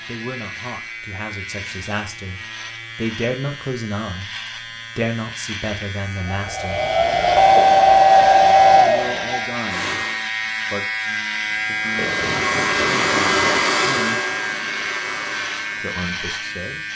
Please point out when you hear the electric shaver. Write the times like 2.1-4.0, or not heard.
0.0-16.9.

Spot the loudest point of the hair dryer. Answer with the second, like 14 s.
8 s.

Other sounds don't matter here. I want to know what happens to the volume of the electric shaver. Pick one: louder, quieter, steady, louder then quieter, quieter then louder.
louder.